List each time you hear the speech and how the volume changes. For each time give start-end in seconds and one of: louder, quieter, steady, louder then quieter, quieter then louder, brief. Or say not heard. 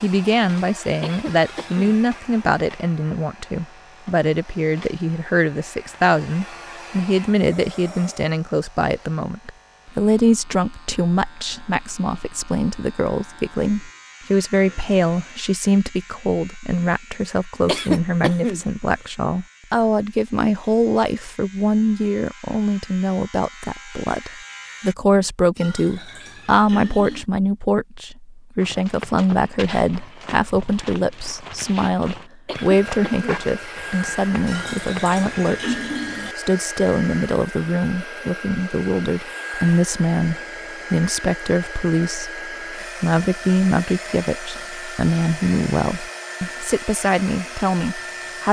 0.0-48.4 steady.